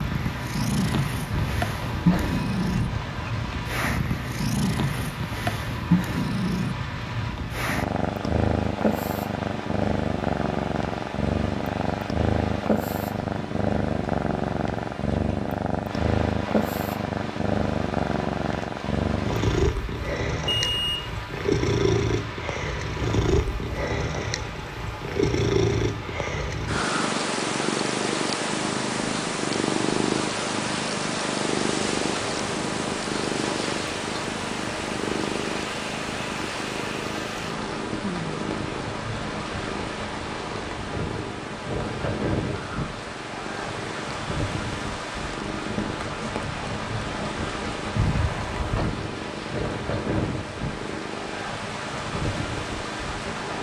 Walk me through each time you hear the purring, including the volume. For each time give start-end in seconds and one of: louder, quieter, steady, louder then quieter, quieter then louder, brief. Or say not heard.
0.0-53.5 quieter.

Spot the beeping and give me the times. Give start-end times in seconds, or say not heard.
1.3-3.3, 20.6-21.1, 48.0-49.0.